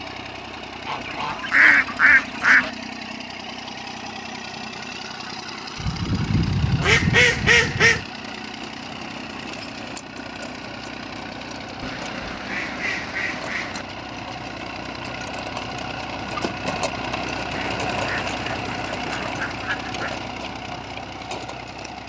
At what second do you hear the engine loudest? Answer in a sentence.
The volume of the engine peaks at 18 seconds.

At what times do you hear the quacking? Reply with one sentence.
The quacking can be heard from 0.8 to 2.7 s, from 5.8 to 8.1 s, from 11.8 to 13.8 s and from 17.5 to 20.2 s.